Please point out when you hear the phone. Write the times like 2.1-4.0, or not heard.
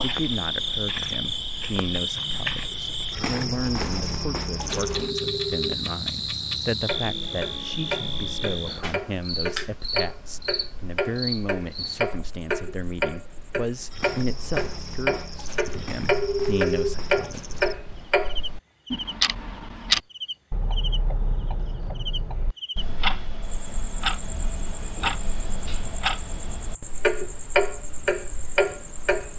4.7-5.8, 16.1-16.9.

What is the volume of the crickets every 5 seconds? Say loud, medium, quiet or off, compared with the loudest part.
loud, loud, medium, medium, medium, quiet.